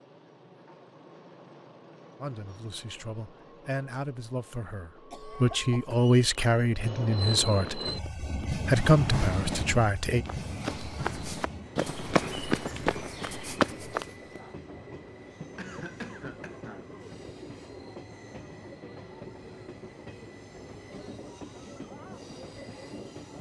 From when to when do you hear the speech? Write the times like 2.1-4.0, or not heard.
2.2-10.2.